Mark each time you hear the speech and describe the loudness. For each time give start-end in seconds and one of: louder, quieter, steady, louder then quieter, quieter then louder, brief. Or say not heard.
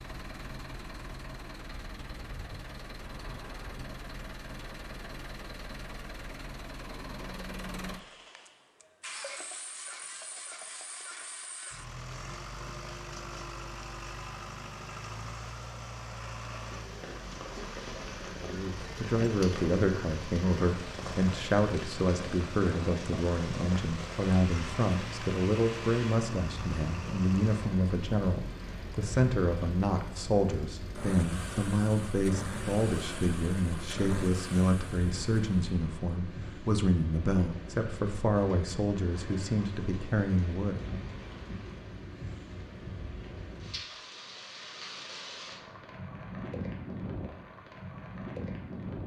18.4-41.0 steady.